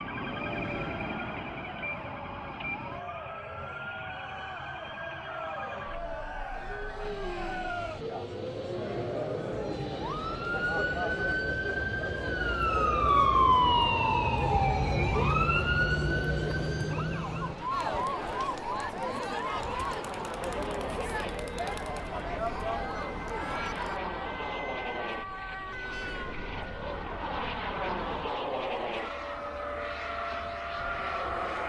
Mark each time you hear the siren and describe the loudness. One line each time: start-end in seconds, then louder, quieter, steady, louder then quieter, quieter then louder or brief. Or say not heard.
0.0-31.6 louder then quieter.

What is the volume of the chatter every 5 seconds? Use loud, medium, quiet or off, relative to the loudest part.
medium, loud, loud, loud, loud, off, off.